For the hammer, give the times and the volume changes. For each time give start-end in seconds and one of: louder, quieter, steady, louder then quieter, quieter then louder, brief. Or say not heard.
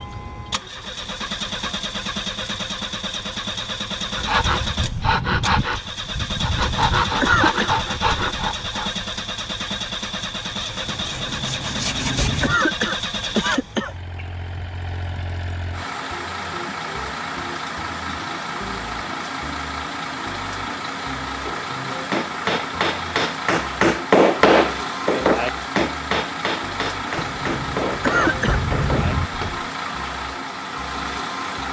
21.4-29.6 louder then quieter.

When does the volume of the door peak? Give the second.
29 s.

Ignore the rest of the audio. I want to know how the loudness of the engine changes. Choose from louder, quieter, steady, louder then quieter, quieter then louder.
steady.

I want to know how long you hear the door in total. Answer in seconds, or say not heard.
4 s.